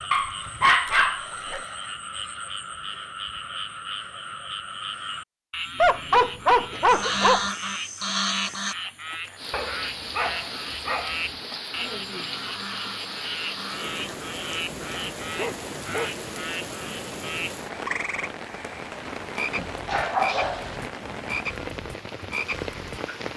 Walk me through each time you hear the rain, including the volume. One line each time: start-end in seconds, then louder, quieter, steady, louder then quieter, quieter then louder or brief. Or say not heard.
9.3-23.3 steady.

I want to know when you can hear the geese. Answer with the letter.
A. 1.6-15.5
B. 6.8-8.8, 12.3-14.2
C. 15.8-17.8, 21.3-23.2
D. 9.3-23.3
B.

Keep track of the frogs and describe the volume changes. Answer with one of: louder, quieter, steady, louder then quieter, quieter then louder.
steady.